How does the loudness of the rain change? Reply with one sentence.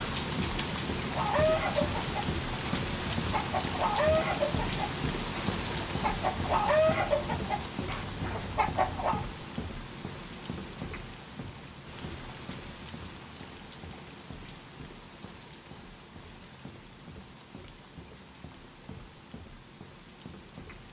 The volume of the rain goes down.